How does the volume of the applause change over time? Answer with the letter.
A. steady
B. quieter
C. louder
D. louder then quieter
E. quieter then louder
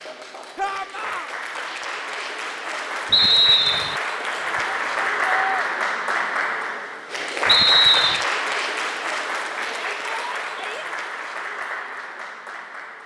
D.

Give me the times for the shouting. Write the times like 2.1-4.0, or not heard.
0.6-1.3, 4.4-5.7, 9.7-10.8.